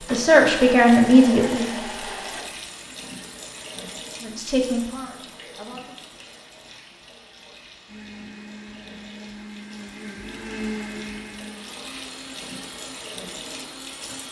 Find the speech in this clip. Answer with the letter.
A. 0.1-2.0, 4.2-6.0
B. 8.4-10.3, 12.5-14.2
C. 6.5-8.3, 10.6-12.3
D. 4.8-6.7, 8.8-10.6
A.